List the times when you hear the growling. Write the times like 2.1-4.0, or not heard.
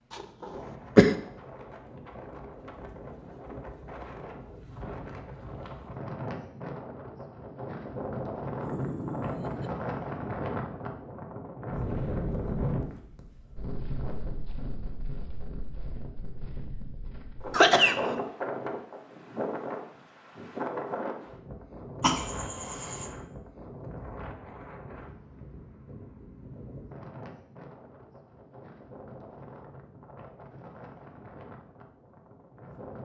8.6-9.8.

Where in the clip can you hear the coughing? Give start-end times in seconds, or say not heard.
0.4-1.1, 17.5-17.9, 22.0-23.1.